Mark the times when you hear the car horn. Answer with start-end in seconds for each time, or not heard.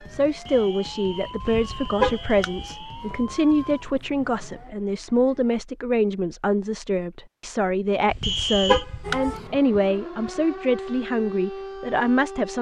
1.4-2.7, 8.1-9.4.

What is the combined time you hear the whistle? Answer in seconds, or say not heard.
3 s.